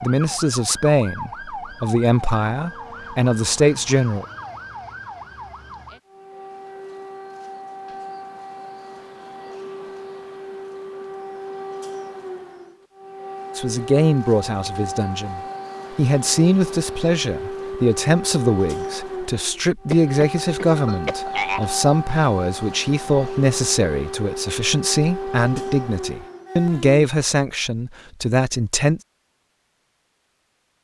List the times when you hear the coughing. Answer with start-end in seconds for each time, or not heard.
19.9-21.7.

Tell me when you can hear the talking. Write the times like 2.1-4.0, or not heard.
0.0-4.2, 13.6-29.0.